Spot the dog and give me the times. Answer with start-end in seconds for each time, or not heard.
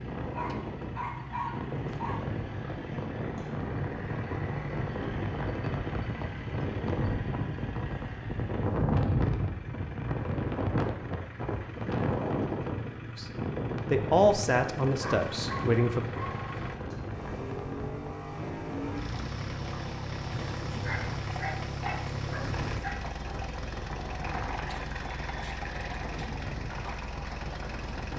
0.3-2.2, 14.8-16.8, 20.3-22.9.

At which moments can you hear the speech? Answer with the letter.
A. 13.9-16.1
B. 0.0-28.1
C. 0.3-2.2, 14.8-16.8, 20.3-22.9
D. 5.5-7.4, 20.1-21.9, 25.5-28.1
A.